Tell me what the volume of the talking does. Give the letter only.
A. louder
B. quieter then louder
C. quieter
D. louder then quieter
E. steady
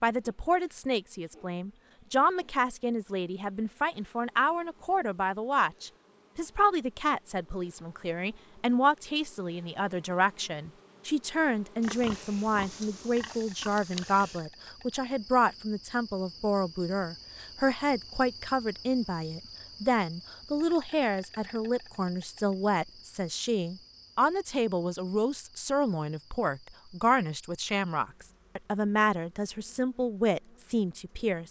E.